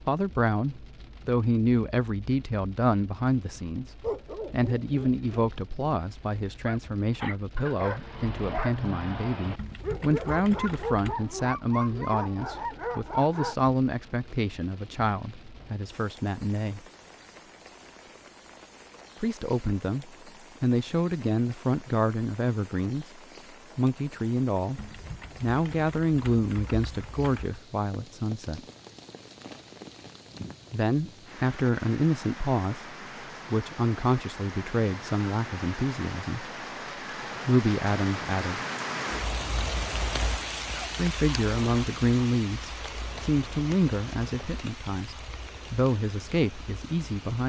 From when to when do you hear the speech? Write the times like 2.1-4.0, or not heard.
0.1-16.8, 19.2-28.6, 30.7-36.5, 37.5-38.6, 41.0-47.4.